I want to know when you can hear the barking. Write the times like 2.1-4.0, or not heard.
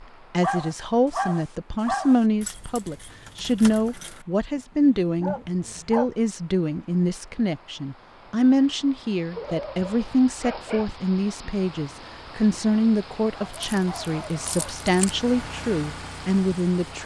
0.4-2.2, 4.5-6.1, 9.3-10.9, 13.3-14.8.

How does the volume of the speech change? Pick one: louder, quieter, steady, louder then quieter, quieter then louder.
steady.